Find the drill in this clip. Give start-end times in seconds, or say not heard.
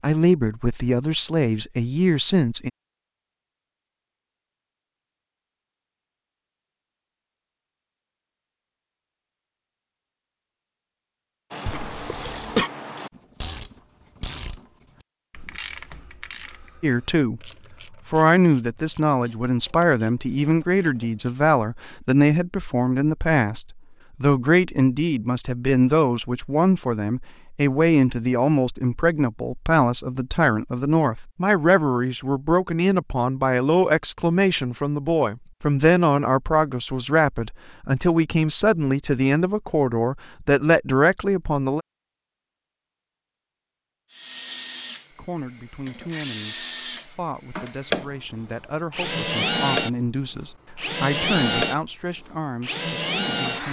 44.1-53.6.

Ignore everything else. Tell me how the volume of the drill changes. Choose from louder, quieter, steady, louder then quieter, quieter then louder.
louder.